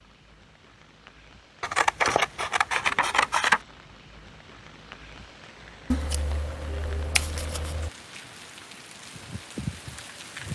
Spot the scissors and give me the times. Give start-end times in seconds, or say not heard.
1.6-3.6, 5.9-7.9.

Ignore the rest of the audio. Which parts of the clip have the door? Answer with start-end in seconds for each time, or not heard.
not heard.